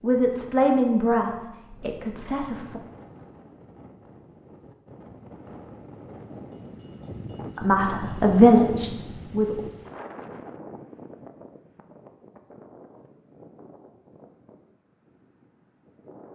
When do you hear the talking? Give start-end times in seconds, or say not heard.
0.0-2.8, 7.5-9.6.